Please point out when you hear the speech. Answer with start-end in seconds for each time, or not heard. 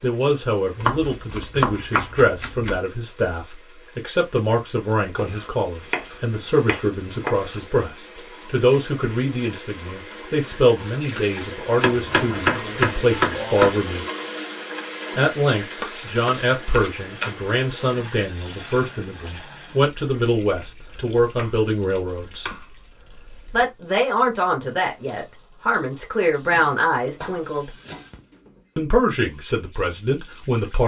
0.0-14.1, 15.2-22.4, 23.5-27.7, 28.8-30.8.